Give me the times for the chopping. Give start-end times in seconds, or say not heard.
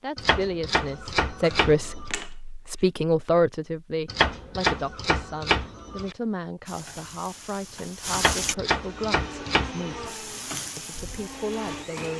0.1-2.1, 4.0-6.2, 8.1-10.1.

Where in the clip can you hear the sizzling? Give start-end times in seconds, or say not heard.
6.7-8.6, 10.1-12.1.